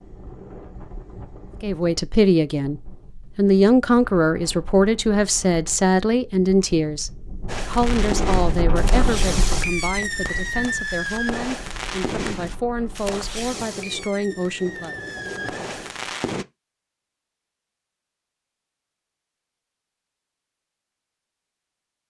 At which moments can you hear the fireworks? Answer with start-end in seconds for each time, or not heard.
7.5-16.4.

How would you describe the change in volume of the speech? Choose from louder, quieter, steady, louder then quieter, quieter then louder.
quieter.